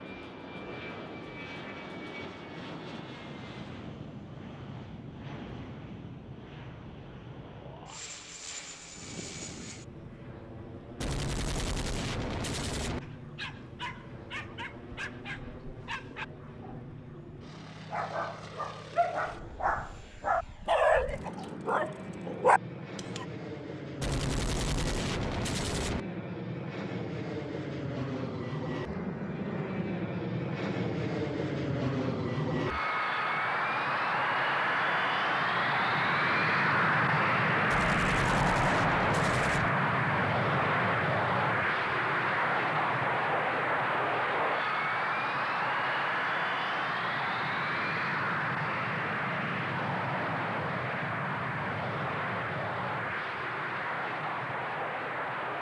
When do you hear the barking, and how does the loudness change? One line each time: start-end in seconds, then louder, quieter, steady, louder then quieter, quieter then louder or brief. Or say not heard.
13.0-23.2 louder.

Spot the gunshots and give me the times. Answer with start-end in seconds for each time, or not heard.
11.0-13.0, 24.0-26.1, 37.7-39.7.